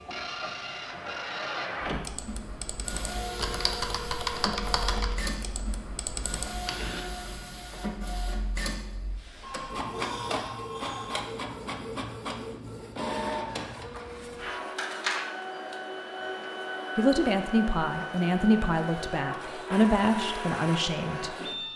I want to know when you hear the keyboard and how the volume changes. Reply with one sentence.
The keyboard can be heard from 1.9 to 7.0 s, getting louder then quieter.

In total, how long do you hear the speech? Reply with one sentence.
You can hear the speech for 4 seconds altogether.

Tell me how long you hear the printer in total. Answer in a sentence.
You can hear the printer for 22 seconds altogether.